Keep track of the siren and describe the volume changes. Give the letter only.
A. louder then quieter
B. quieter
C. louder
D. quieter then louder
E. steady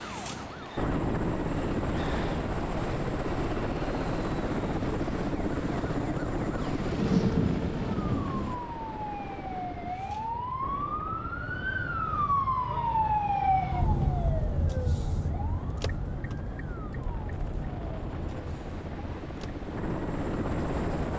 A.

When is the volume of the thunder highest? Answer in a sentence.
The loudest moment of the thunder is at 7 seconds.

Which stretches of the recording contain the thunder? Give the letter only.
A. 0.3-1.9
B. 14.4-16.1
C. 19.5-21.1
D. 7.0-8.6
D.